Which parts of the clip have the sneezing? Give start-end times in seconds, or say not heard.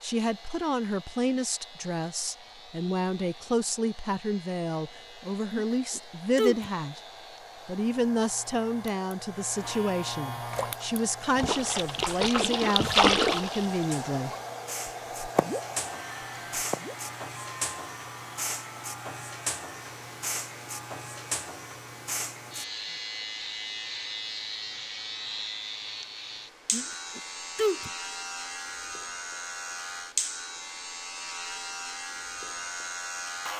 5.5-6.7, 26.7-27.9.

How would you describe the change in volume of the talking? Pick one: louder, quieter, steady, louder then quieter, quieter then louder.
steady.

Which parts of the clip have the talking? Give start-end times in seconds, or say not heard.
0.0-7.0, 7.7-14.3.